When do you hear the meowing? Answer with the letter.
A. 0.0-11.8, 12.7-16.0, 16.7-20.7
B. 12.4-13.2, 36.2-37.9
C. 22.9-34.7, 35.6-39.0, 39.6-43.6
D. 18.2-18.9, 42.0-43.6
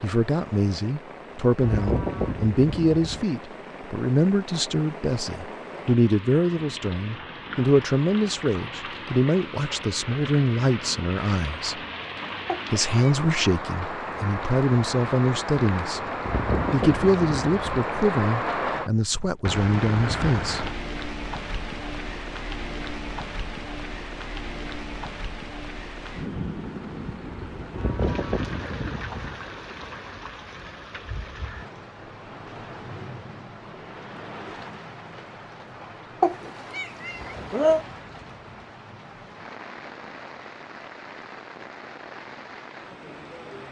B.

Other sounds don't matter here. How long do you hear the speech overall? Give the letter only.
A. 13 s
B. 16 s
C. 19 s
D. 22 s
C.